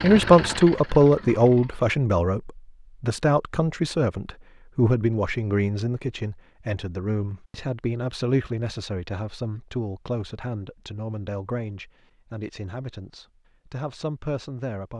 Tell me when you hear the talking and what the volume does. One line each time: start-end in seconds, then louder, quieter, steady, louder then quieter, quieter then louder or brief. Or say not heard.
0.0-14.9 quieter.